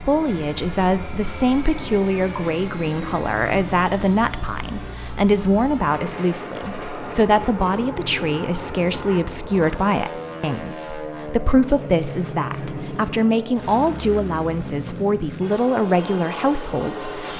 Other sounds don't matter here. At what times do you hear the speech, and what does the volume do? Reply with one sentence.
The speech can be heard from 0.0 to 17.3 s, at a steady volume.